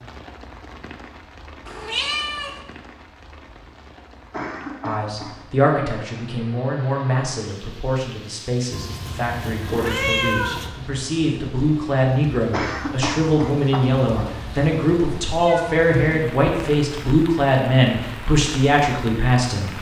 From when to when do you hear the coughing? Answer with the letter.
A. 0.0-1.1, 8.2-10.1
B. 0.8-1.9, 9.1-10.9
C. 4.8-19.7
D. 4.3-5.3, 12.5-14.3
D.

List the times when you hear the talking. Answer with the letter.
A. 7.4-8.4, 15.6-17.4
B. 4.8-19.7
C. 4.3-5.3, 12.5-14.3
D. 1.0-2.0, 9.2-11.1
B.